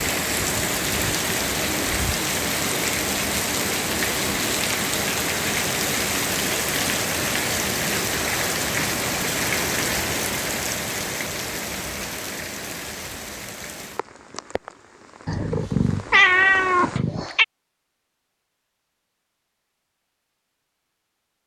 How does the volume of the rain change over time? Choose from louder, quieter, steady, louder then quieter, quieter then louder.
quieter.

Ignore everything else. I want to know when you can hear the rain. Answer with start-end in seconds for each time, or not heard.
0.0-17.0.